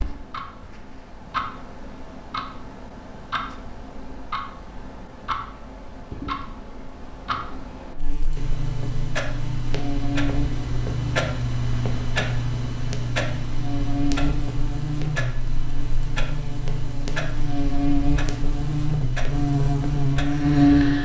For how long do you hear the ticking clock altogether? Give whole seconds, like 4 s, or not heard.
21 s.